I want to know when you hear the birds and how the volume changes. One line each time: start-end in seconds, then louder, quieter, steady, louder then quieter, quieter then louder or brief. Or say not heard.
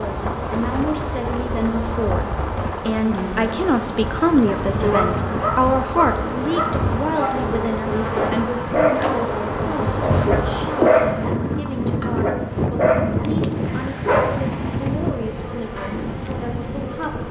not heard.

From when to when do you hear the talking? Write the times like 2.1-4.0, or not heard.
0.0-17.2.